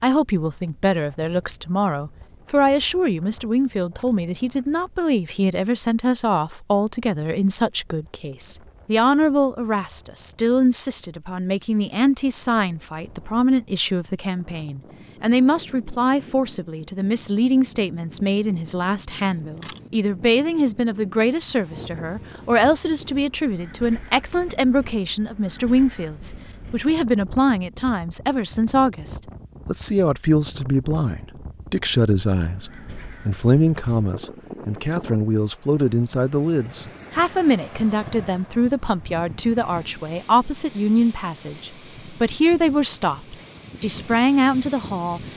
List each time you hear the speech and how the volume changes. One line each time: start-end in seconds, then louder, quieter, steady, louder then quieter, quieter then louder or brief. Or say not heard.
0.0-45.2 steady.